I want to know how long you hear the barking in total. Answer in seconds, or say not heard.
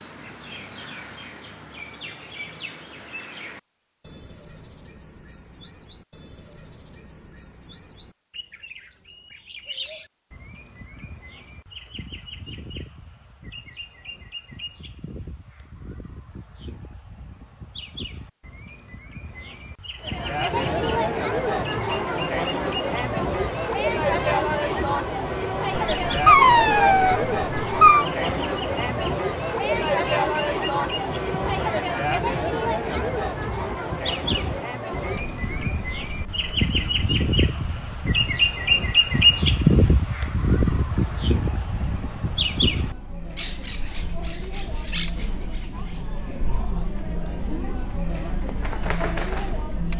2 s.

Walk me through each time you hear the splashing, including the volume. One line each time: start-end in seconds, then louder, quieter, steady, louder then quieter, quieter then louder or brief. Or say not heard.
not heard.